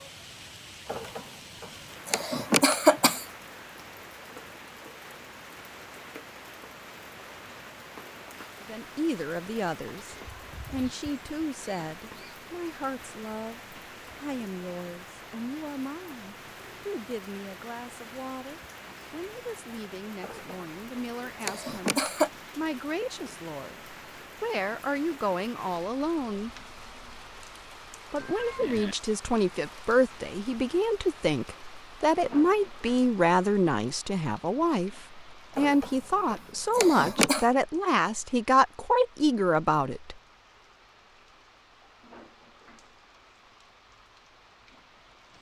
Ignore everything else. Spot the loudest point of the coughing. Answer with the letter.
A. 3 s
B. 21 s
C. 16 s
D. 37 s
A.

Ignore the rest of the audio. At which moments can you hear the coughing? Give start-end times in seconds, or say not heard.
0.8-3.2, 20.2-22.3, 35.5-37.5.